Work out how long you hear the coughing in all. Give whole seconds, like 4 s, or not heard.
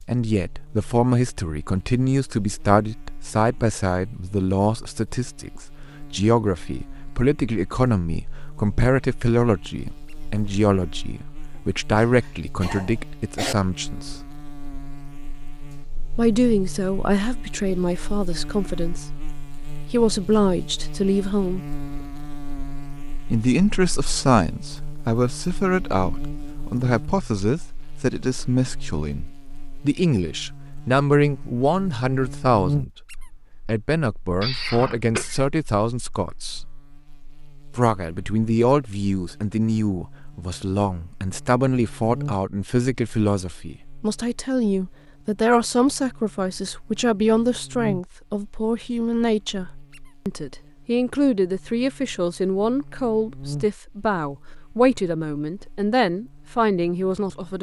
3 s.